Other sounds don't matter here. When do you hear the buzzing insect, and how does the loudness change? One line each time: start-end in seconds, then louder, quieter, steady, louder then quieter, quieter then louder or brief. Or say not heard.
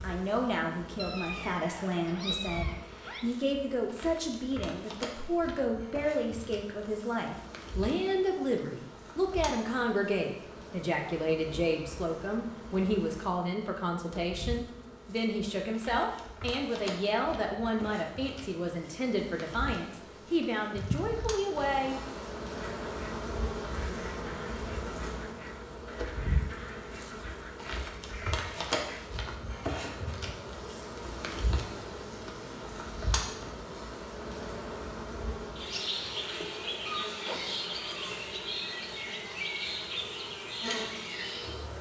0.0-41.7 louder.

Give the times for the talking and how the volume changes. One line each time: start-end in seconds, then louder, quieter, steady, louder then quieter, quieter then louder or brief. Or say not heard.
0.0-21.9 steady.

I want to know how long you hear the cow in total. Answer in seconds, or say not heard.
not heard.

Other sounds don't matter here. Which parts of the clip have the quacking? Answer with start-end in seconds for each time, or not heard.
22.5-29.1.